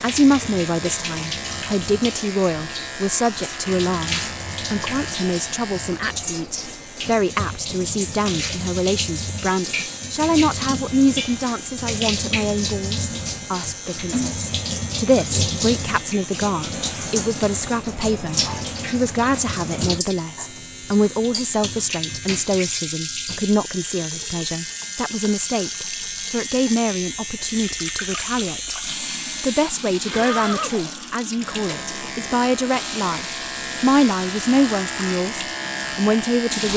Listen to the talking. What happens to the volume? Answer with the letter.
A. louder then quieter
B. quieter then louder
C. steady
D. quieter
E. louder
C.